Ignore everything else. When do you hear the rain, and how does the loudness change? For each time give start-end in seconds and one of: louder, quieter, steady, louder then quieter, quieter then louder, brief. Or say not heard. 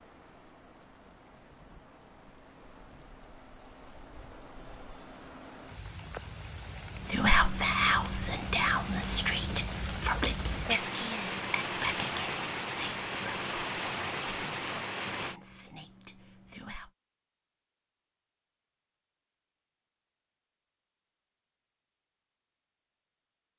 0.0-15.4 louder.